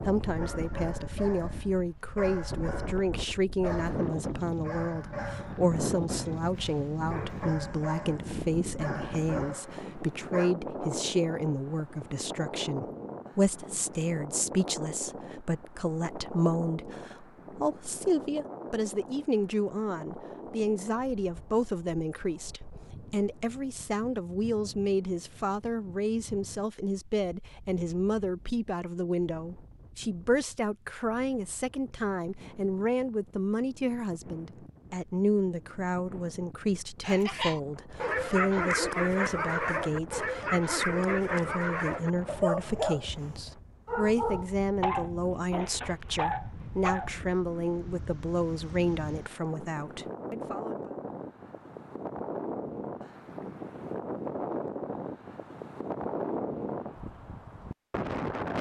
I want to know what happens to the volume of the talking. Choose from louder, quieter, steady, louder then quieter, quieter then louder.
steady.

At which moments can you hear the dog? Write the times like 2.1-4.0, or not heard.
0.3-10.5, 37.0-47.1.